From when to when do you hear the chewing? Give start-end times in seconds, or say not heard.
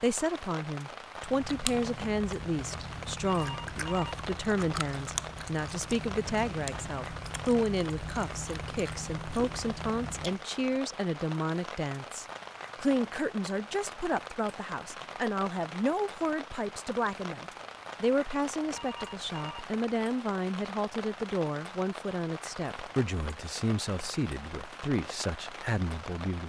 1.2-10.4.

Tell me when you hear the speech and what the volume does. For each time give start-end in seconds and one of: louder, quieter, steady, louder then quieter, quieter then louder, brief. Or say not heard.
0.0-26.4 steady.